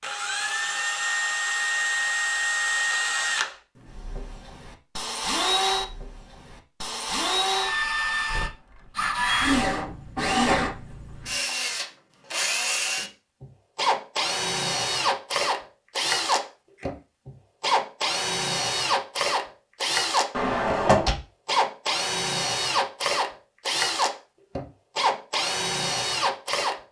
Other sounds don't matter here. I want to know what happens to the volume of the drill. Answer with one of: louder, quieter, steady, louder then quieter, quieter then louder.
steady.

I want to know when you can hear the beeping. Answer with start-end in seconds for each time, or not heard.
not heard.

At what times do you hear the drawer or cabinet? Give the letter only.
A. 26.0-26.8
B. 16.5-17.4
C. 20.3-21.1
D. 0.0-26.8
C.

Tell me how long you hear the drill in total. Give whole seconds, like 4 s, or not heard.
27 s.